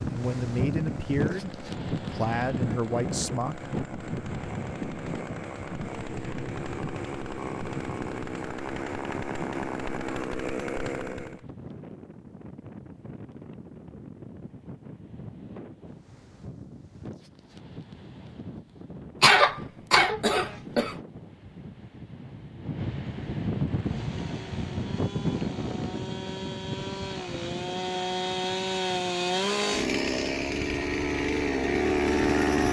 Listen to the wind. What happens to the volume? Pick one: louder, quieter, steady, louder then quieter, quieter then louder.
quieter then louder.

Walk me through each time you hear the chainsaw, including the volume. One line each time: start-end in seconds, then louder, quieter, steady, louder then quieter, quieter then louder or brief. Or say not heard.
0.0-11.4 louder
23.6-32.6 louder.